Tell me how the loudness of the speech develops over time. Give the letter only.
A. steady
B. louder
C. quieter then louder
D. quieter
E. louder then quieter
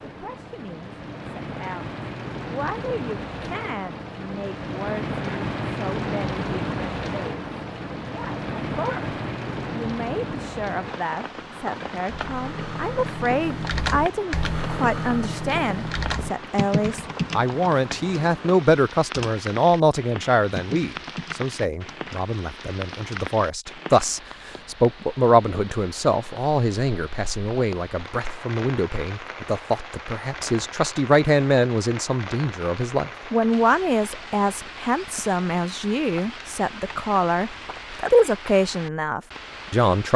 B.